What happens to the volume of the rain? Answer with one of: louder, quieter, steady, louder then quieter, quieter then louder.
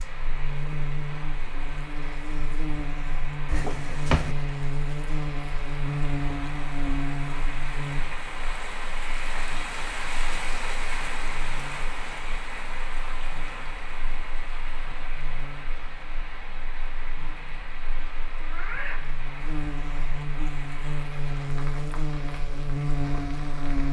louder then quieter.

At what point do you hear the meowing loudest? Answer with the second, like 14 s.
4 s.